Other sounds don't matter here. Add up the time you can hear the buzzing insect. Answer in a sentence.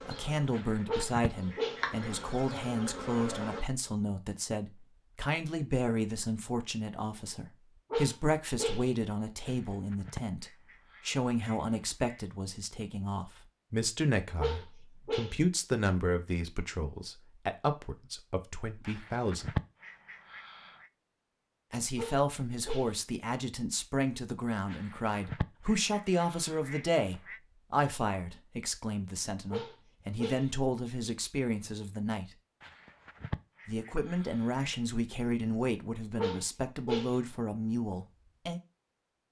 You can hear the buzzing insect for 4 seconds altogether.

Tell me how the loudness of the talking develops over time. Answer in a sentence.
The loudness of the talking stays about the same.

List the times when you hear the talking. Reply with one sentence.
The talking can be heard from 0.1 to 19.6 s, from 21.7 to 32.2 s and from 33.6 to 38.6 s.